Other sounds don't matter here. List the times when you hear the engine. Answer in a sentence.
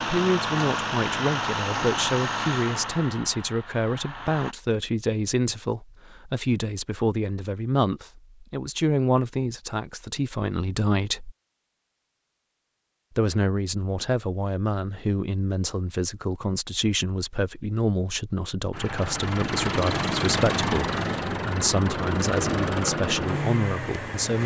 The engine can be heard from 0.0 to 4.5 s and from 18.7 to 24.4 s.